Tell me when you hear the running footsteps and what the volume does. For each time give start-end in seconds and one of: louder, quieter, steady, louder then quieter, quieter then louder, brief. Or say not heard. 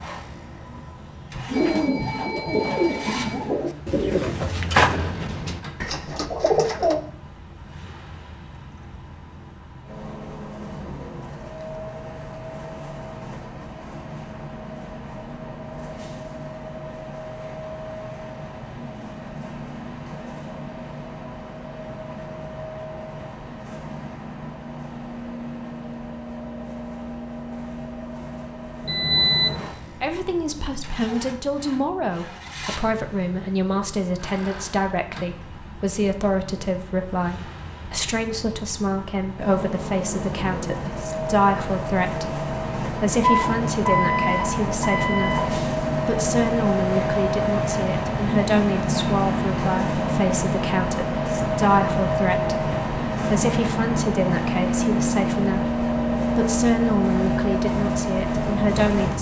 not heard.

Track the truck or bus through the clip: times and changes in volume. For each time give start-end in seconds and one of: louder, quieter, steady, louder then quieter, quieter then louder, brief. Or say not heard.
0.0-59.1 louder.